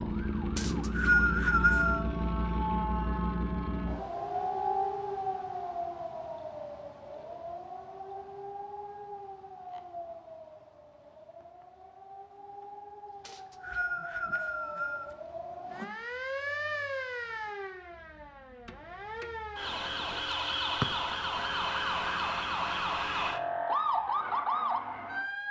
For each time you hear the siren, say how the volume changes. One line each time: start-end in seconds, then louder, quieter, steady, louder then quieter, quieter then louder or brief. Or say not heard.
0.0-25.4 quieter then louder.